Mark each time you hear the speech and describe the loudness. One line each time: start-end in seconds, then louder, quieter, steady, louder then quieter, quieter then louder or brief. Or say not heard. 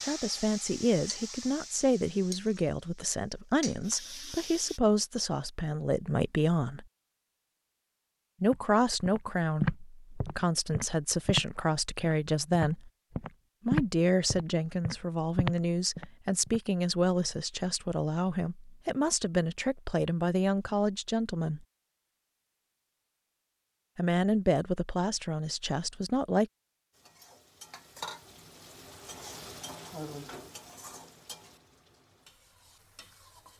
0.0-6.8 steady
8.4-12.9 quieter then louder
13.7-21.6 steady
23.9-26.4 brief.